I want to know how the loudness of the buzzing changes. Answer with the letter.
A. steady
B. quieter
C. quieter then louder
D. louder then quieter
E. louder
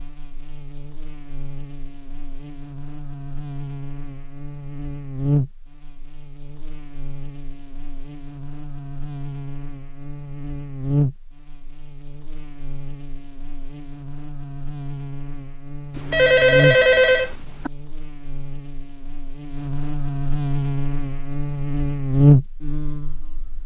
E.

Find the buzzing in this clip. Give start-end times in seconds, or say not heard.
0.0-23.6.